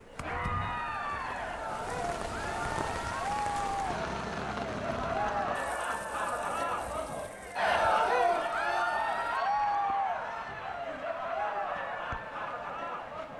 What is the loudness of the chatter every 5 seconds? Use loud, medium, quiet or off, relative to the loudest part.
medium, loud, medium.